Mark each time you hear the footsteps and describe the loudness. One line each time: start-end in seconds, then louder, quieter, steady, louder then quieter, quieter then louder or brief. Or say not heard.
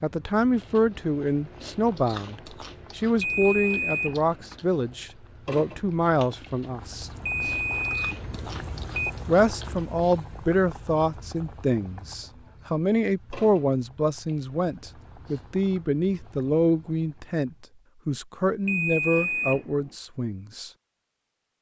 not heard.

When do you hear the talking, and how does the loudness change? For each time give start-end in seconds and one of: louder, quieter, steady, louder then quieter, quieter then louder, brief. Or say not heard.
0.0-7.1 steady
9.2-20.7 steady.